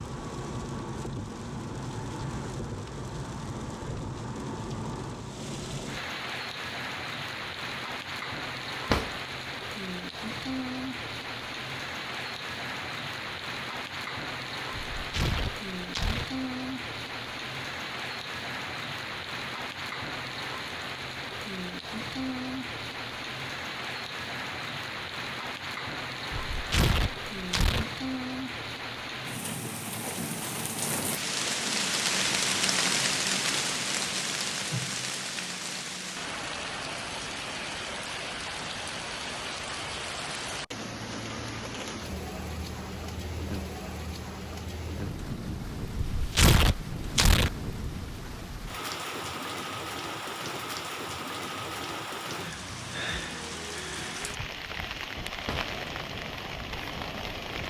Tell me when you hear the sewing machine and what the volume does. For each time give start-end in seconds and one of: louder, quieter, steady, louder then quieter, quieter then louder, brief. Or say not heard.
not heard.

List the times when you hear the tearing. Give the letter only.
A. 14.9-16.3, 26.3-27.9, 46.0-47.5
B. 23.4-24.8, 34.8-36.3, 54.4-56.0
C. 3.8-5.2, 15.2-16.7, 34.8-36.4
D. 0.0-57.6
A.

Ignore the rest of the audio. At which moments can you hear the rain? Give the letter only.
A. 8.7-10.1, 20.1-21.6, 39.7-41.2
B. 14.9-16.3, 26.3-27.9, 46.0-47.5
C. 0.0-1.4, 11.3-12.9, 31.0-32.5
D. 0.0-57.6
D.